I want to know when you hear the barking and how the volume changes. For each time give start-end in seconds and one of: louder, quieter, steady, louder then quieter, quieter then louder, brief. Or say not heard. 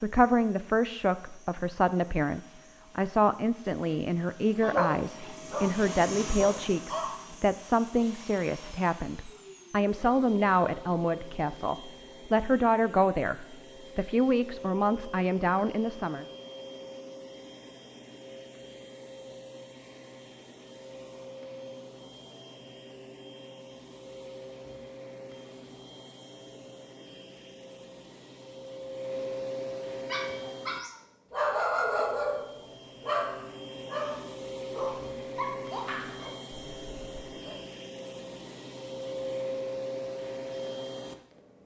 4.6-7.1 brief
30.1-37.6 quieter.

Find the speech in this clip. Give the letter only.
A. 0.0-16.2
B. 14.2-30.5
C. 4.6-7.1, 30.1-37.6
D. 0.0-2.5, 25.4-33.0
A.